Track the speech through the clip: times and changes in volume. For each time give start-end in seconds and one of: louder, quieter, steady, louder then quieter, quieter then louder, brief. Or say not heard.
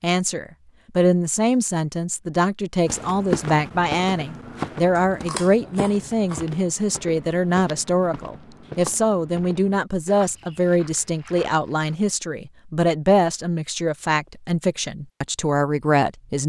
0.0-16.4 steady.